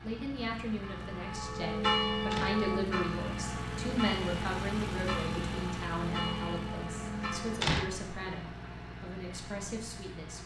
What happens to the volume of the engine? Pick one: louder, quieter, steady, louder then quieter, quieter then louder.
louder then quieter.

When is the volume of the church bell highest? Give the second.
2 s.